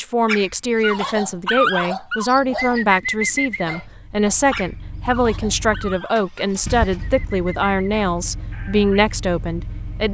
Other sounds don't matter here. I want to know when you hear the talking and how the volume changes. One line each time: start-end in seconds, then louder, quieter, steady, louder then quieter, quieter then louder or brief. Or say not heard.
0.0-10.0 steady.